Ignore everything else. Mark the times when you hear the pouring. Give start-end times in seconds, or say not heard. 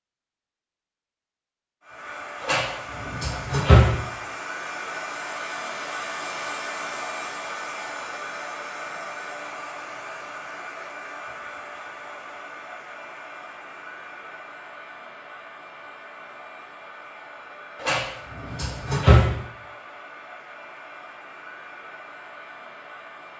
not heard.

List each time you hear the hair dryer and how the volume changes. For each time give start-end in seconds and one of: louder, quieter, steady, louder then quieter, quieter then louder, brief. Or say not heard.
1.8-23.3 quieter.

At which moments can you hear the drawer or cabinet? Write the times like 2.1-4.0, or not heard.
2.4-4.0, 17.8-19.2.